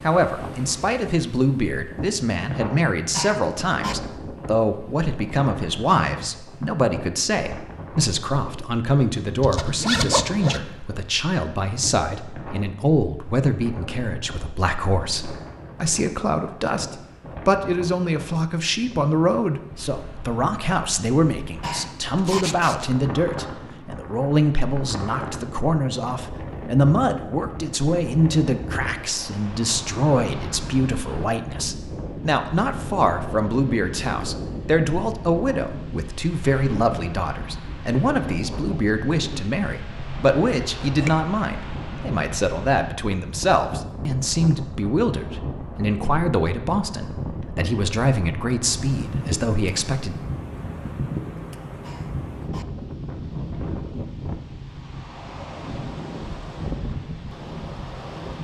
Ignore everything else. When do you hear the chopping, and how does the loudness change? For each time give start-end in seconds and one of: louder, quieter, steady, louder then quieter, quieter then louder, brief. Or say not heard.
not heard.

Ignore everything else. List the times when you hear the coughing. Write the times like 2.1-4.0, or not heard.
3.1-4.0, 21.6-22.4, 51.8-52.6.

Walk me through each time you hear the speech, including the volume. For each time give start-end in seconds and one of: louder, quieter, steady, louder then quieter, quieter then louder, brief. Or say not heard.
0.0-50.1 steady.